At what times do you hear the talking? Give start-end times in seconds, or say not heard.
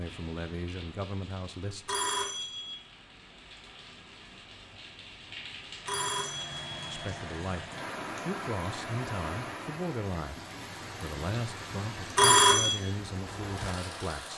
0.0-1.9, 6.8-7.7, 8.2-14.3.